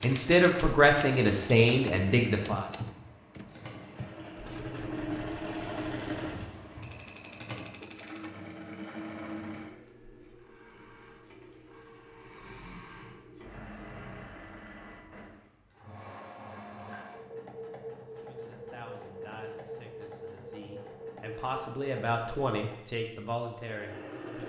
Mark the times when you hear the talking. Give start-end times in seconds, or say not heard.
0.0-2.6, 18.2-24.4.